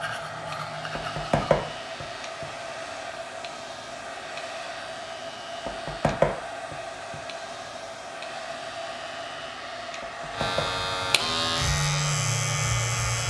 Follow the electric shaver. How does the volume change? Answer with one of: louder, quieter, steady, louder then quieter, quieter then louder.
louder.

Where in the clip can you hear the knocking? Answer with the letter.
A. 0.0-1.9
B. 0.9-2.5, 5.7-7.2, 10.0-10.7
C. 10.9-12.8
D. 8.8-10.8
B.